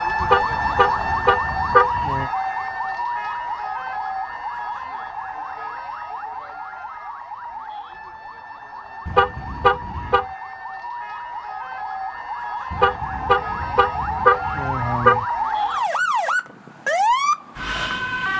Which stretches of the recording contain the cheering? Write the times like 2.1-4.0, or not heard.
not heard.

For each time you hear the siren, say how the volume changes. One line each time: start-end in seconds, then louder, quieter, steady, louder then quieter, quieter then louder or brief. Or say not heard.
0.0-18.3 quieter then louder.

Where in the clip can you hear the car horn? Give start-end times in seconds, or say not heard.
0.2-2.3, 9.1-10.2, 12.7-15.2.